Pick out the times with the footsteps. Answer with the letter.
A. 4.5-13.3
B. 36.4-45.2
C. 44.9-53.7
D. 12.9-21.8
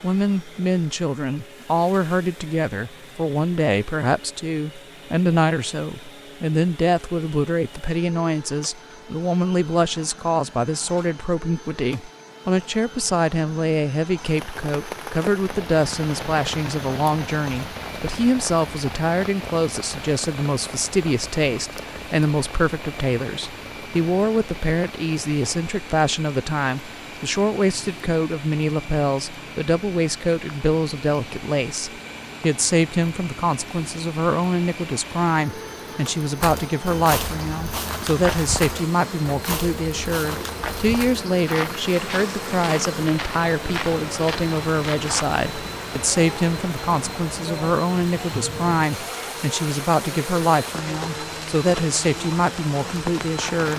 B.